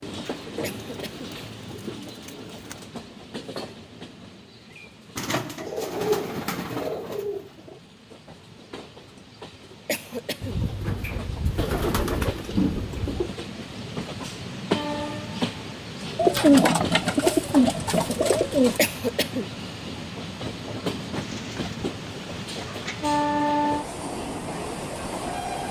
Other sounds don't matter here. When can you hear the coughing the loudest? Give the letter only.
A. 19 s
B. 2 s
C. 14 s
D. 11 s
A.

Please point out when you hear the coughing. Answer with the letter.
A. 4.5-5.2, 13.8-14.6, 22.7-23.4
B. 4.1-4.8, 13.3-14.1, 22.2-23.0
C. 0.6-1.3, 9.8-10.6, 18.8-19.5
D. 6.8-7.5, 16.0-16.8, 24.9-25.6
C.